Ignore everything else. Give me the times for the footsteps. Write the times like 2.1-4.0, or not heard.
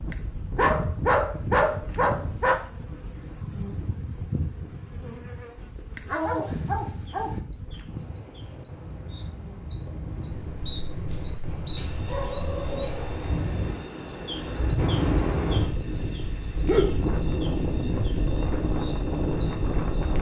not heard.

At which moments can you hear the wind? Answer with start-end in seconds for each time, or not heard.
0.0-20.1.